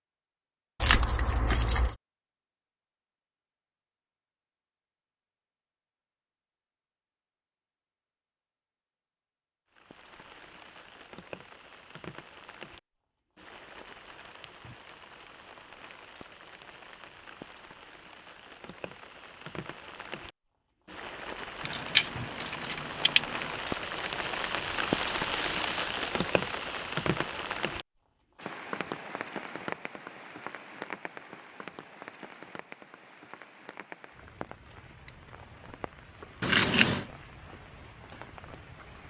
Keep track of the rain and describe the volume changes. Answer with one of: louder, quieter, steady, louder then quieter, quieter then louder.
louder then quieter.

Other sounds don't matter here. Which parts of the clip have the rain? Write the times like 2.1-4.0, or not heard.
9.7-39.0.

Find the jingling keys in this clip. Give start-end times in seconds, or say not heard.
0.8-1.9, 21.6-23.5, 36.4-37.0.